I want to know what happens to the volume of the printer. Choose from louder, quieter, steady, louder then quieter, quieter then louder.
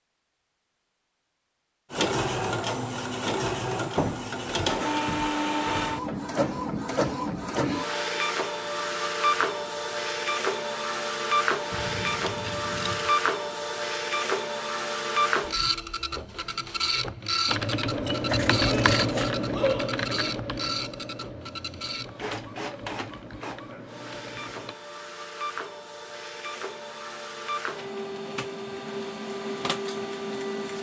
quieter.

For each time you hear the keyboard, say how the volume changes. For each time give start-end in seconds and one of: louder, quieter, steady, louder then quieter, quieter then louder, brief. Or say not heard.
17.4-24.8 quieter.